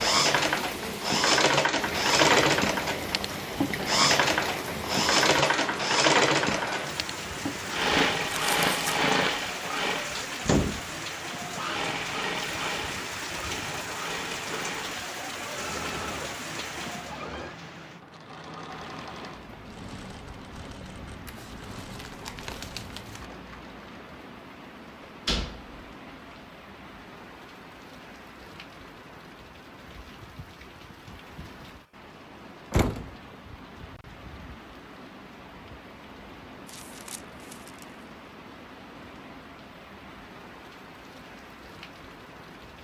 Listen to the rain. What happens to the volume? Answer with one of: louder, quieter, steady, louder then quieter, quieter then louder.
quieter.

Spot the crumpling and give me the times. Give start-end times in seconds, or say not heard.
8.3-9.0, 21.2-23.3, 36.6-38.0.